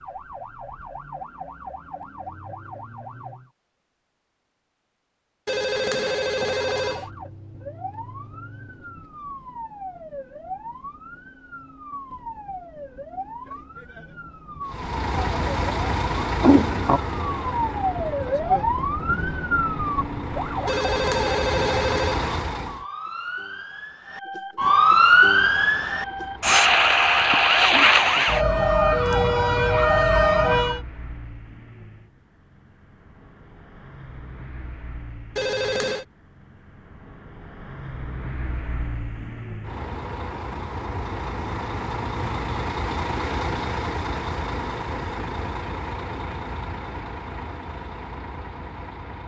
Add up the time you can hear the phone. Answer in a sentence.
You can hear the phone for 4 seconds altogether.